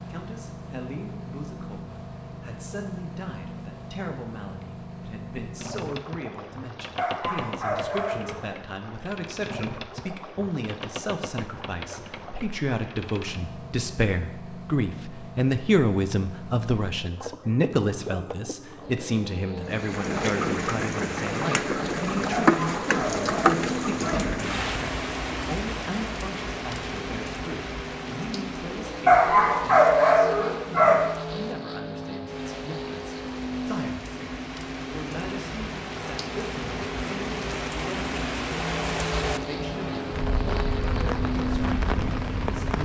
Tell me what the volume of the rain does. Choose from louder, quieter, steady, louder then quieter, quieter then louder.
quieter then louder.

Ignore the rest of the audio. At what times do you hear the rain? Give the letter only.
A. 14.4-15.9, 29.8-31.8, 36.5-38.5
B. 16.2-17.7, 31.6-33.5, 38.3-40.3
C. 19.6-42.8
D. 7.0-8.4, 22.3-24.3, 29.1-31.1
C.